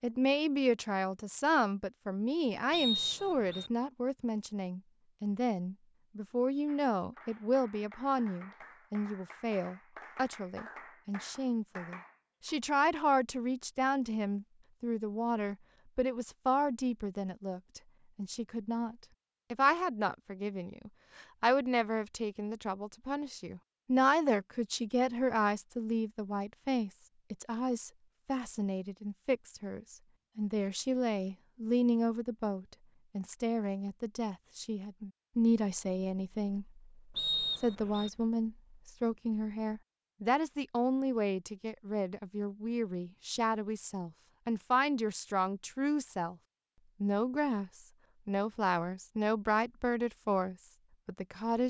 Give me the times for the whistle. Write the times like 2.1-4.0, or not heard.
2.7-3.7, 37.1-38.1.